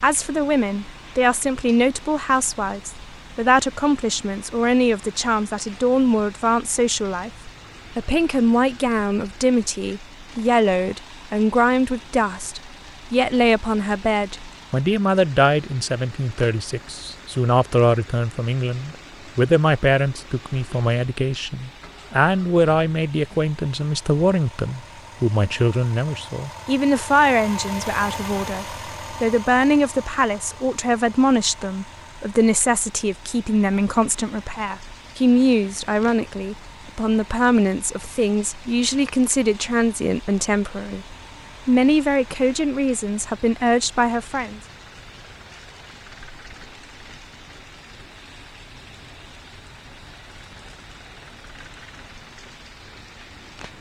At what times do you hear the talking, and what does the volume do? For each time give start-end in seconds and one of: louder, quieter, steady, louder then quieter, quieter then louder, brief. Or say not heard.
0.0-44.6 steady.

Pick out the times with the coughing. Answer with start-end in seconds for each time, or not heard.
not heard.